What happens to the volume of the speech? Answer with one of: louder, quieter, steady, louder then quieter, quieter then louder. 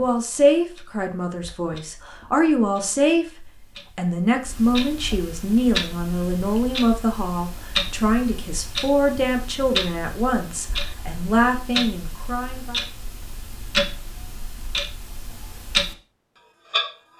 steady.